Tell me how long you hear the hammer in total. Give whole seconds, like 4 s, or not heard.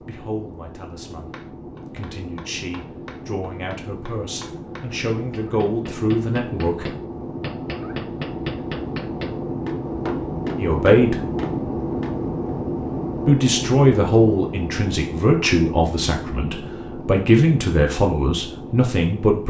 11 s.